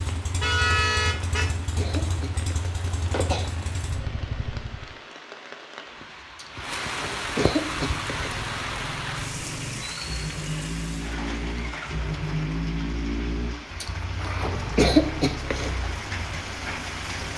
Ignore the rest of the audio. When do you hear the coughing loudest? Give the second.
15 s.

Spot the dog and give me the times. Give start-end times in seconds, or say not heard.
not heard.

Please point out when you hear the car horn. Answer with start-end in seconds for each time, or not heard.
0.4-1.5.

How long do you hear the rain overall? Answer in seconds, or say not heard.
17 s.